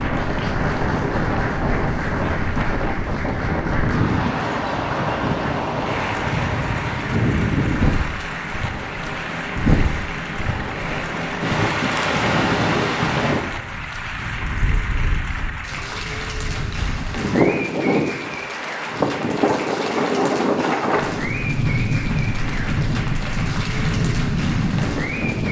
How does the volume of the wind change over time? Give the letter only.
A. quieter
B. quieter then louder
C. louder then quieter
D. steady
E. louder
D.